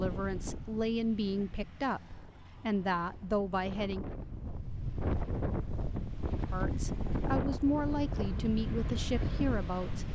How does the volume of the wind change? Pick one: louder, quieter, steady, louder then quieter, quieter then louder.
louder.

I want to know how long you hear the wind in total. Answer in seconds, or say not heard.
10 s.